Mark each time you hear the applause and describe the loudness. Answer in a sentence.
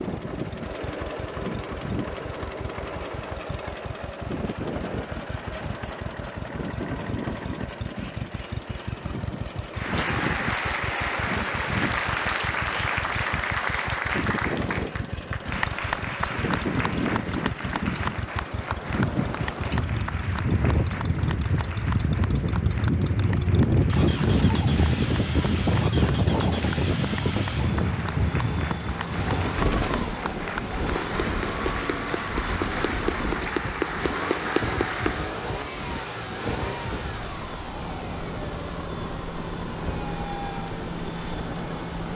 The applause can be heard from 9.7 to 35.3 s, getting quieter then louder.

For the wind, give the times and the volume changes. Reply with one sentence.
The wind can be heard from 0.0 to 42.1 s, getting louder then quieter.